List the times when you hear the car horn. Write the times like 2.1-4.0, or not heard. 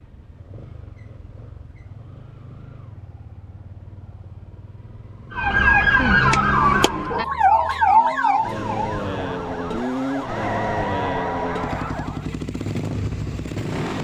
not heard.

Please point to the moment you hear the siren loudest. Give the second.
6 s.